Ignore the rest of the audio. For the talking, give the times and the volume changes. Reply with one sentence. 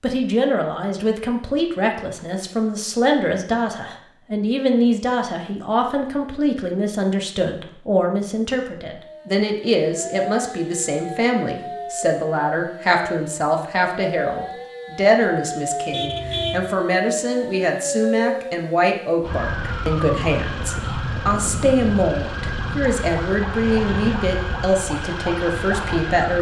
The talking can be heard from 0.0 to 26.3 s, at a steady volume.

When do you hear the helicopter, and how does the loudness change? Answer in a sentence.
The helicopter can't be heard in this clip.